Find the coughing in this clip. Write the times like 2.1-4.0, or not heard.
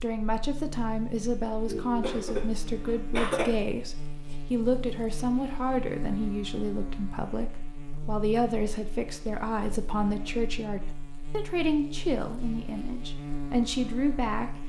1.6-3.5.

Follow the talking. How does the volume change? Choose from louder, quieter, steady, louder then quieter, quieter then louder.
steady.